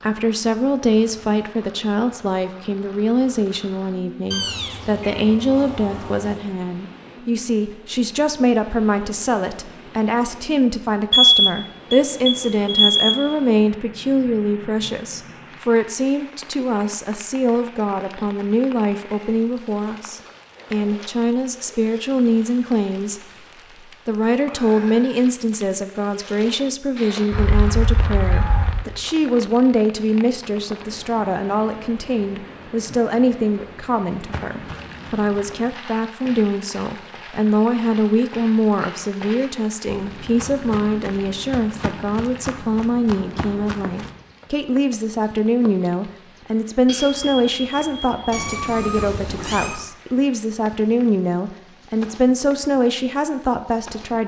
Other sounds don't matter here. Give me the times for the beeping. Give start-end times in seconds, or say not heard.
11.1-13.2, 27.3-28.9, 46.9-48.2.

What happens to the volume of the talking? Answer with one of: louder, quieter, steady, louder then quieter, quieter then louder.
steady.